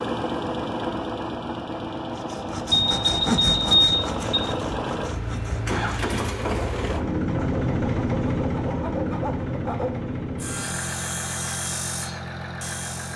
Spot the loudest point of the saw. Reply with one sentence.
The loudest moment of the saw is at 3 seconds.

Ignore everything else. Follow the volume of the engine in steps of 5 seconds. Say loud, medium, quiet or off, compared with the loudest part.
loud, loud, medium.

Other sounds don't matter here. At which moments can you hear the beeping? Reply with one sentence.
The beeping can be heard from 2.7 to 4.4 s.